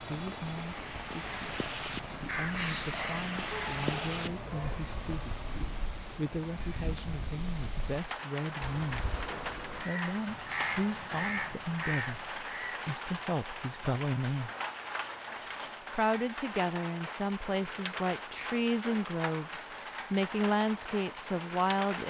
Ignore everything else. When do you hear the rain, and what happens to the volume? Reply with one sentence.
The rain can be heard from 0.0 to 22.0 s, at a steady volume.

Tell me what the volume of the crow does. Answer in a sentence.
The loudness of the crow goes down, then up.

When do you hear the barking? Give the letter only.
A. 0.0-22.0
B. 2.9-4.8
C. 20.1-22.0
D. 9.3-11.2
B.